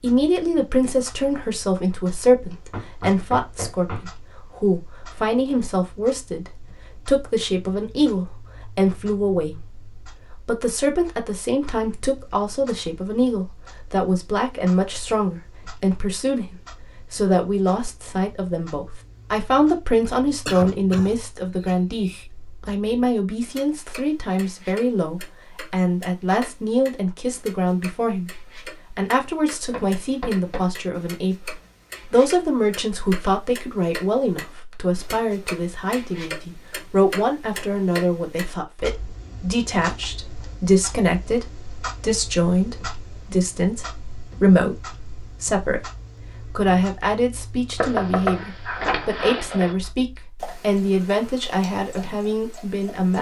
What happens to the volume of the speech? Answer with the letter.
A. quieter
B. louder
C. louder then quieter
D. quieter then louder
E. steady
E.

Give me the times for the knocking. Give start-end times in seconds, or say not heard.
2.5-4.1, 29.6-30.7, 47.8-49.8.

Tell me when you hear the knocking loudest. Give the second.
48 s.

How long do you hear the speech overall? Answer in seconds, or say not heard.
52 s.